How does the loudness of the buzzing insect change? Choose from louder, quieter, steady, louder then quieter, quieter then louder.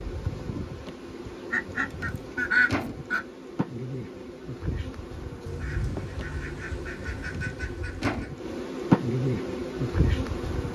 louder.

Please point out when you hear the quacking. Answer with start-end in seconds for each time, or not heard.
1.5-3.2, 5.5-8.3.